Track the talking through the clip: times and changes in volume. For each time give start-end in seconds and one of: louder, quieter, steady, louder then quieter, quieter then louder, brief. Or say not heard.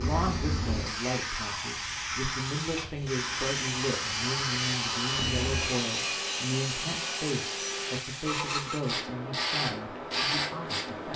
0.0-11.1 steady.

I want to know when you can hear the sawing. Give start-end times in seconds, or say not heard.
2.9-9.0.